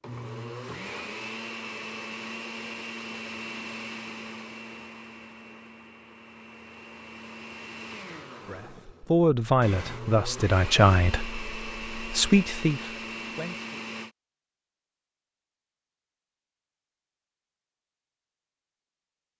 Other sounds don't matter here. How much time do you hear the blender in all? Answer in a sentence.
The blender can be heard for 14 seconds in total.